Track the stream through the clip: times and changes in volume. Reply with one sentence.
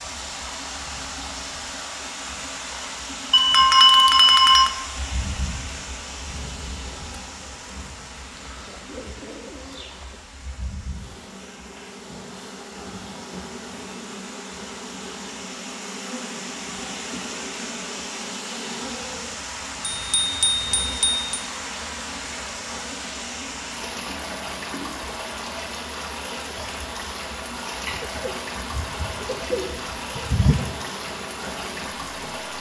You can hear the stream from 0.0 to 32.5 s, getting quieter then louder.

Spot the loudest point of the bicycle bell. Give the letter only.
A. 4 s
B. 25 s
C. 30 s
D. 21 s
A.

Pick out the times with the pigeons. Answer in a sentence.
The pigeons can be heard from 8.4 to 10.2 s and from 27.9 to 30.7 s.